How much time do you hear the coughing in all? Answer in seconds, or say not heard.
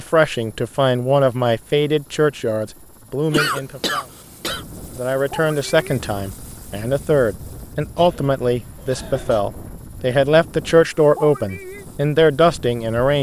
3 s.